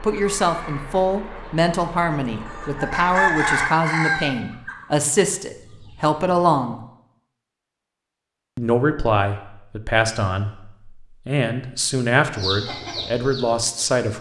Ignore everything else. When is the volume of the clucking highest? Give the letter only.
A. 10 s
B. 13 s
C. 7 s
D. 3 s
D.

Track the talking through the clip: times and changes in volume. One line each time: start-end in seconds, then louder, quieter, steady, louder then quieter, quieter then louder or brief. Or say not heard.
0.0-6.8 steady
8.6-14.1 steady.